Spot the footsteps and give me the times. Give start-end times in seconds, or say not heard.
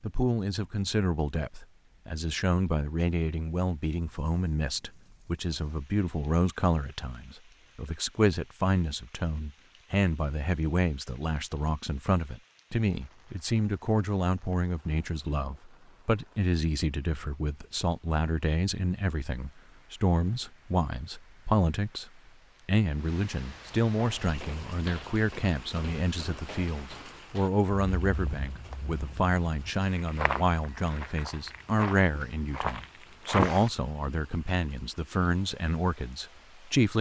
23.9-33.7.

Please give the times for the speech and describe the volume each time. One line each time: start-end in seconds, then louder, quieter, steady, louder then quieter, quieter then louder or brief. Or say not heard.
0.0-36.9 steady.